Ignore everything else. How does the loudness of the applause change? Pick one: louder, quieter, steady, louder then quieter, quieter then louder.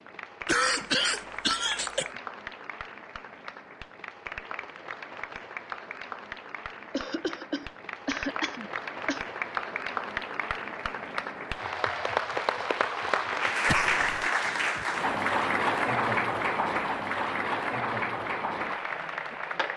louder.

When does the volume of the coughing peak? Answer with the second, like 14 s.
1 s.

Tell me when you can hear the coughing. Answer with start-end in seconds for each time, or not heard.
0.5-2.1, 6.9-9.2, 13.7-14.3.